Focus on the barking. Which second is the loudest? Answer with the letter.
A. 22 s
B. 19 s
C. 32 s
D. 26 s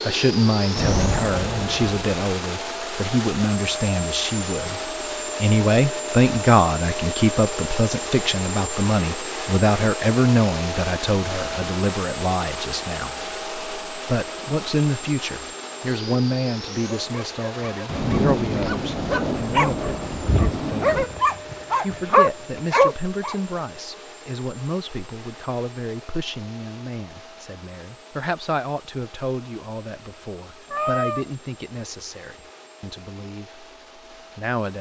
A.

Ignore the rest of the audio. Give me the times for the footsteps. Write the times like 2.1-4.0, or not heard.
not heard.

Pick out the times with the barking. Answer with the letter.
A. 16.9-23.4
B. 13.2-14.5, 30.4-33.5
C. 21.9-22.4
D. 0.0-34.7
A.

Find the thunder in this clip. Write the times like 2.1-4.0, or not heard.
0.8-2.0, 17.9-21.1.